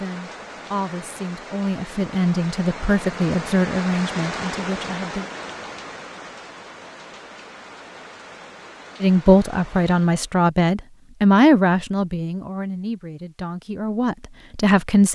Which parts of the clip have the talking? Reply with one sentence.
You can hear the talking from 0.0 to 5.2 s and from 9.0 to 15.1 s.